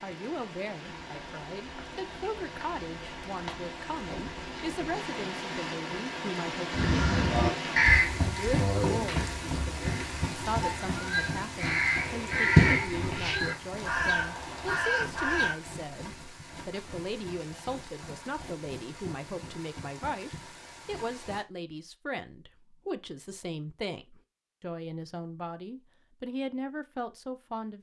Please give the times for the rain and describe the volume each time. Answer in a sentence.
You can hear the rain from 0.0 to 21.4 s, getting louder then quieter.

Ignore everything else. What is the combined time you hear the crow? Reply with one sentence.
You can hear the crow for 9 seconds altogether.